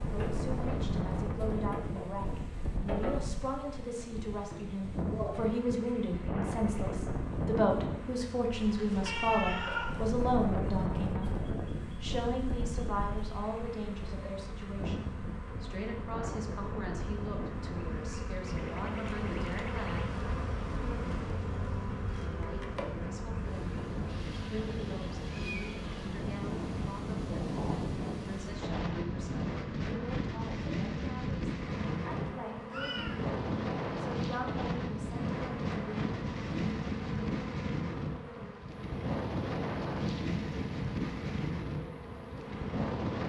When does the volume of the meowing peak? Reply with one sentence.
The volume of the meowing peaks at 10 seconds.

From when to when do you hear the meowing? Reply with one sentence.
You can hear the meowing from 8.5 to 10.2 s, from 24.1 to 26.1 s and from 32.1 to 33.2 s.